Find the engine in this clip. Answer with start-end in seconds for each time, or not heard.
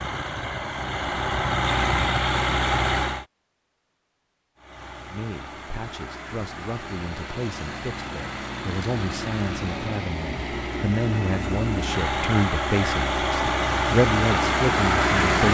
0.0-3.2, 4.5-15.4.